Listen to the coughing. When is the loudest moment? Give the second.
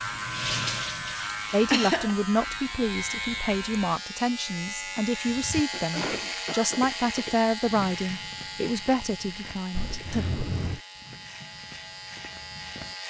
2 s.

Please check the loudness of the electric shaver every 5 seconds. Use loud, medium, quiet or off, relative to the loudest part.
loud, loud, medium.